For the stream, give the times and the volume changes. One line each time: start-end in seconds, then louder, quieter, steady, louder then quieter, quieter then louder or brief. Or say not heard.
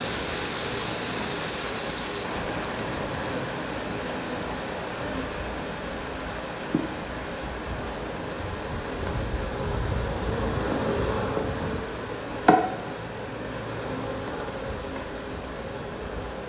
0.0-16.4 quieter.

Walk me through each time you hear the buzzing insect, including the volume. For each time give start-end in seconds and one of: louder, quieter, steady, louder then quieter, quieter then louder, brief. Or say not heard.
0.0-16.4 louder then quieter.